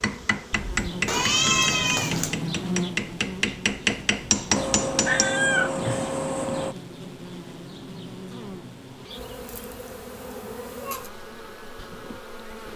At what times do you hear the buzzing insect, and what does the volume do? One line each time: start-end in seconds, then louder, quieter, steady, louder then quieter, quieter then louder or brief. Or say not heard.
0.0-12.7 quieter.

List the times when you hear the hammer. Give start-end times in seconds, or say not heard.
0.0-5.3.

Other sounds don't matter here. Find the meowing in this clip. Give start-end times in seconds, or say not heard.
1.1-2.4, 4.5-6.8, 9.4-11.1.